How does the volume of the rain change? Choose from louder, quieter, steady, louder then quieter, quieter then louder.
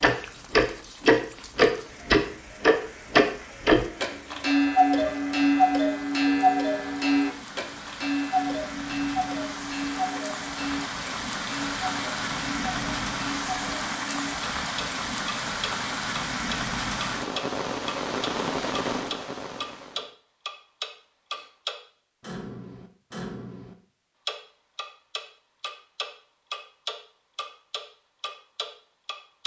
louder.